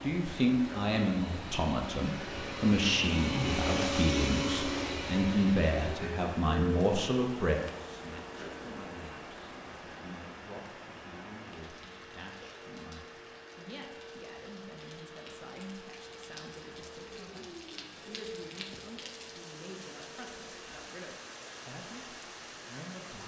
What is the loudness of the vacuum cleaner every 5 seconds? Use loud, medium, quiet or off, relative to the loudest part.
loud, medium, quiet, quiet, quiet.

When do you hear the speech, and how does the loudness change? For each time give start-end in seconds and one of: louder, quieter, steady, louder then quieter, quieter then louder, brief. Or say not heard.
0.0-23.2 quieter.